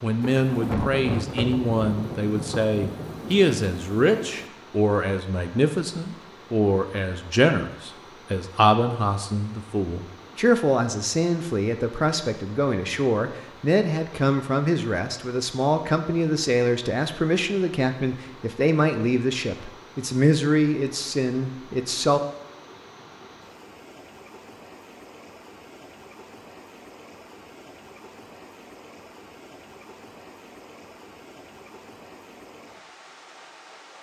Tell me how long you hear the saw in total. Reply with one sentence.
The saw can't be heard in this clip.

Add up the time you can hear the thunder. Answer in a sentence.
The thunder can be heard for 4 seconds in total.